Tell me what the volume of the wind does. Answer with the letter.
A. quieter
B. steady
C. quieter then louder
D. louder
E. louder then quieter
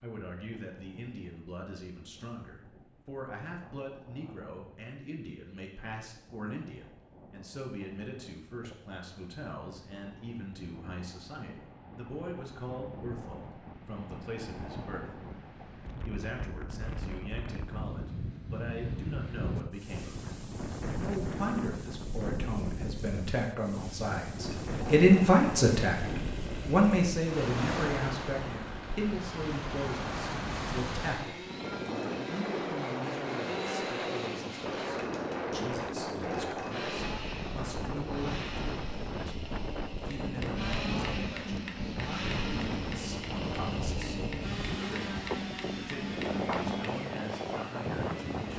D.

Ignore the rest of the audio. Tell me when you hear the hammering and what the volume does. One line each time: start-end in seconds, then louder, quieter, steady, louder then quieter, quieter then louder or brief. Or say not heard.
40.0-47.0 steady.